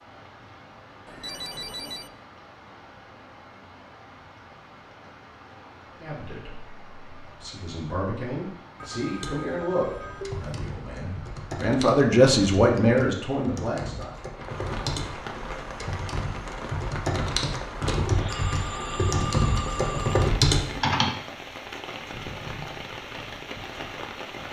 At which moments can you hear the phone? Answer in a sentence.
The phone can be heard from 1.1 to 2.1 s, from 8.8 to 10.6 s and from 18.2 to 20.3 s.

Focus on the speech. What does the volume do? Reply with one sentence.
The loudness of the speech goes up.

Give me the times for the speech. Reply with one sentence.
You can hear the speech from 6.0 to 14.1 s.